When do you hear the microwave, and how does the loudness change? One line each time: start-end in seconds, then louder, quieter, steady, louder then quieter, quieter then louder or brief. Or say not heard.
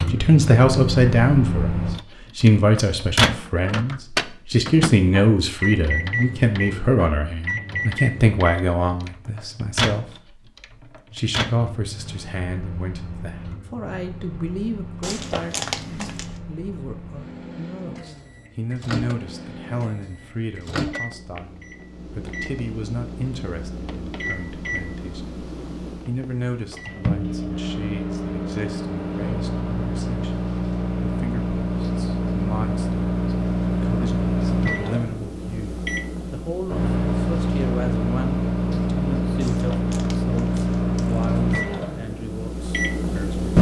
0.0-43.5 quieter then louder.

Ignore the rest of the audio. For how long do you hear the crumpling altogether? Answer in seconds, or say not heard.
3 s.